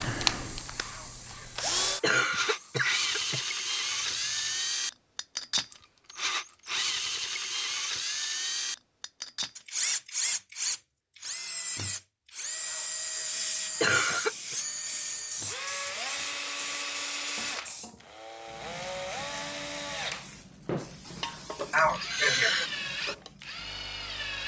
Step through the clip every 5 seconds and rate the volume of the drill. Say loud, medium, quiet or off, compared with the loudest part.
loud, loud, loud, medium, medium.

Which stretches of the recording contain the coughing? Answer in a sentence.
The coughing can be heard from 0.9 to 3.4 s, from 12.7 to 14.6 s and from 21.7 to 22.7 s.